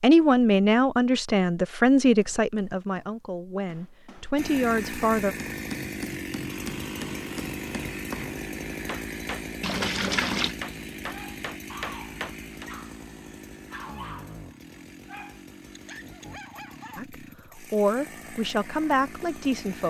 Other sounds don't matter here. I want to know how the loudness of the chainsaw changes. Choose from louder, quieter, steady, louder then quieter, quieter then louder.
quieter.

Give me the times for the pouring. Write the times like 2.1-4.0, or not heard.
9.6-10.6.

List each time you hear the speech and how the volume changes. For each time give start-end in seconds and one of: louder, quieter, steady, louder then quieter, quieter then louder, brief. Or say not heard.
0.0-5.3 quieter then louder
16.9-19.8 brief.